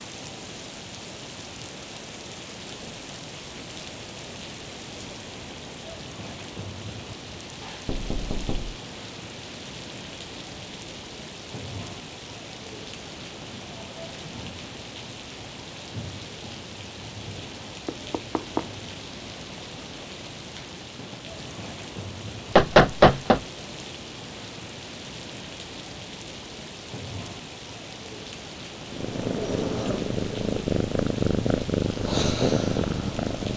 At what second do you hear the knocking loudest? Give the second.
23 s.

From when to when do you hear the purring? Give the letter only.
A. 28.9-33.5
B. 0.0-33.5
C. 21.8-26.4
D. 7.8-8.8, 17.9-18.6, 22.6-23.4
A.